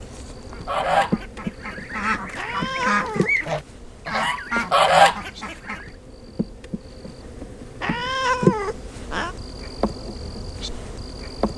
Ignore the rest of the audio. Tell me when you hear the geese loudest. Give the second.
5 s.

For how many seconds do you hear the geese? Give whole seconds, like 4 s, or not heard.
5 s.